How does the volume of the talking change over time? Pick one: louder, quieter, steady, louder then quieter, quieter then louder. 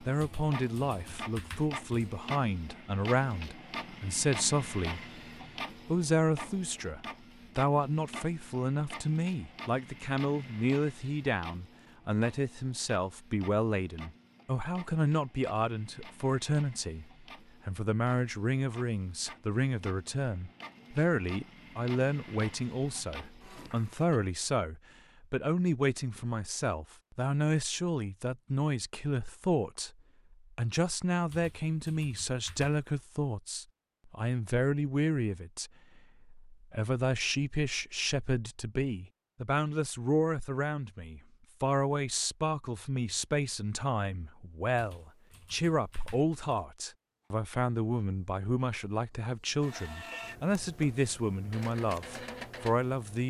steady.